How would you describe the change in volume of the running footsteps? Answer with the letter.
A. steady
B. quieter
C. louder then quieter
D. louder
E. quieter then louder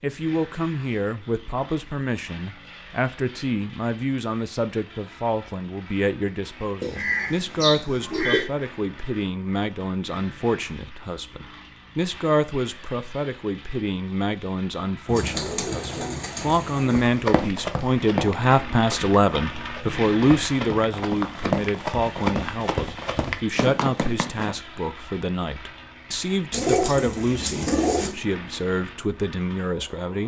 E.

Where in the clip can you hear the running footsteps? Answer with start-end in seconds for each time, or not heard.
16.9-24.6.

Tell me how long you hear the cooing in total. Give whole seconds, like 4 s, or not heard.
5 s.